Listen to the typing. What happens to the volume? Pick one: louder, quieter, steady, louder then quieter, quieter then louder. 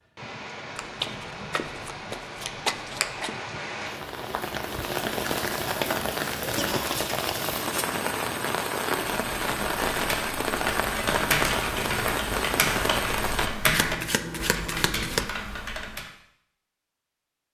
louder then quieter.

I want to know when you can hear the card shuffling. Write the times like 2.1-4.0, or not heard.
0.8-3.4, 13.7-15.3.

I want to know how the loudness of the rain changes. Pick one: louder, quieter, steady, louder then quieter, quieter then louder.
louder.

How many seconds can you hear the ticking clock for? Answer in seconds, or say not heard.
not heard.